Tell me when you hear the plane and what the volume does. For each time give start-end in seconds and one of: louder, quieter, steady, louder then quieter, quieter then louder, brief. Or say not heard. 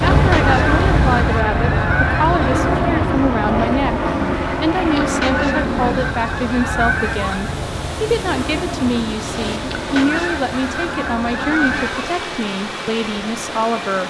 0.0-14.0 quieter.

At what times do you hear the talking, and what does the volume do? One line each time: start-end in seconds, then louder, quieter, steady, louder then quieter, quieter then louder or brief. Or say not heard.
0.0-14.0 steady.